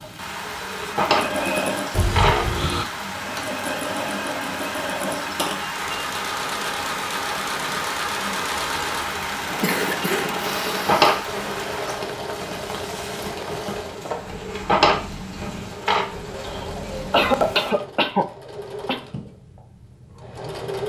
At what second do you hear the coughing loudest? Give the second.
17 s.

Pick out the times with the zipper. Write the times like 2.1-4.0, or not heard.
not heard.